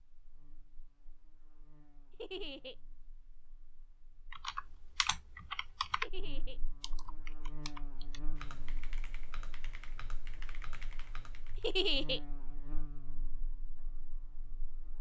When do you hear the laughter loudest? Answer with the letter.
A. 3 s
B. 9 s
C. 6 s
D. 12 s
D.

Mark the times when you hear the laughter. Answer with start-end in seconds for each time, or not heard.
2.1-2.8, 6.0-6.6, 11.6-12.2.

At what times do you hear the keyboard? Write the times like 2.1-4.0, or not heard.
4.3-11.8.